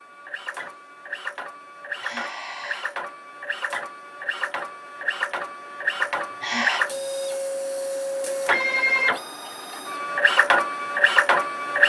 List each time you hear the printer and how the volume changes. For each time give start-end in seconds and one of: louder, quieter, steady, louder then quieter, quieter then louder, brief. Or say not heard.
0.0-11.8 louder.